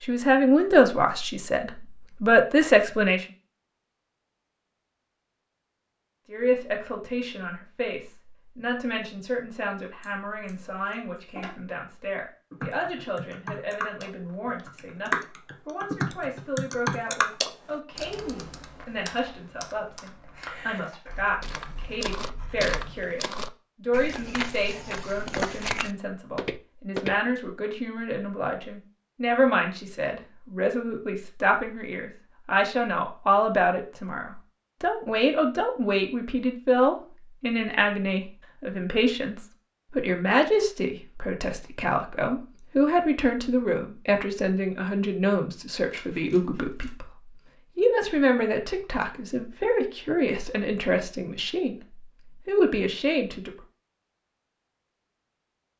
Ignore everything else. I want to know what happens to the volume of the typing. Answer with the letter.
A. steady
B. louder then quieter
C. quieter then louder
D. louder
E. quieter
B.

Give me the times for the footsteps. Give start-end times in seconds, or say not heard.
21.4-27.1.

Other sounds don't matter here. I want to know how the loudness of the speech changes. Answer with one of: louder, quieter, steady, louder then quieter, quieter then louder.
quieter then louder.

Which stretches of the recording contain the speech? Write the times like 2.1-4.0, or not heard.
0.0-3.2, 6.2-53.5.